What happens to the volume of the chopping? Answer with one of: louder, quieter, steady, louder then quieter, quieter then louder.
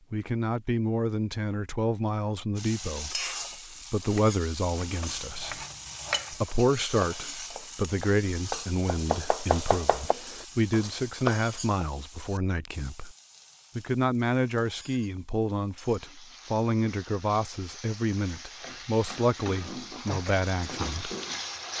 louder.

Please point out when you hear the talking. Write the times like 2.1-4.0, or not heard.
0.1-3.2, 3.9-5.6, 6.3-13.2, 13.8-21.1.